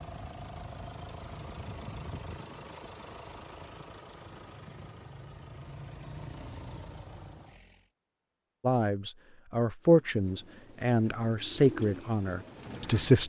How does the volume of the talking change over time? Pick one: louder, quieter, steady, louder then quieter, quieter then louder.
louder then quieter.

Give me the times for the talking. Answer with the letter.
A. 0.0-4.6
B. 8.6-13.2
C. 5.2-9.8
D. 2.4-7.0
B.